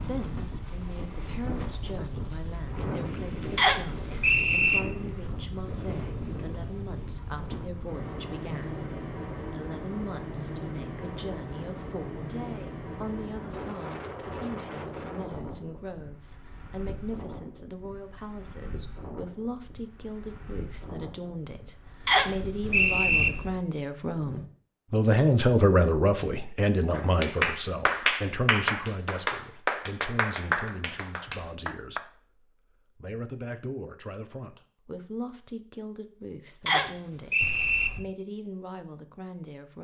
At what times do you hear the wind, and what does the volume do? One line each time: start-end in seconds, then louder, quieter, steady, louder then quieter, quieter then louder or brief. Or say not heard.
0.0-24.4 quieter.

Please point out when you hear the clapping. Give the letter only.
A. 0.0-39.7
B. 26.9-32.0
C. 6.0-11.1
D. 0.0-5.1
B.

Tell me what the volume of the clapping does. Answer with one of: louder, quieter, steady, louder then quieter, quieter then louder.
quieter.